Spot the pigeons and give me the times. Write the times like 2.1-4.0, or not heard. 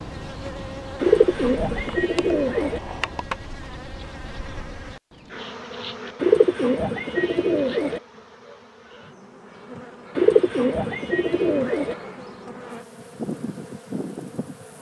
1.0-2.8, 6.2-8.0, 10.2-11.9.